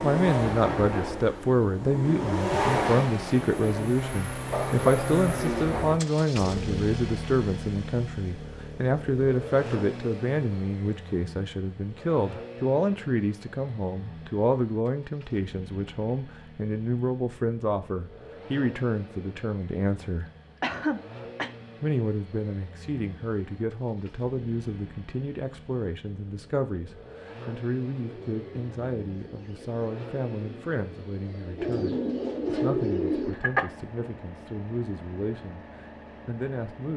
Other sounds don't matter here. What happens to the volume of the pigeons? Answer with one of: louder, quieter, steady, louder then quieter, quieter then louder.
louder.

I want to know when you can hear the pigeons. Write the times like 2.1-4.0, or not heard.
27.9-33.4.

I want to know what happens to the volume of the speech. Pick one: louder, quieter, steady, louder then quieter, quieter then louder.
quieter.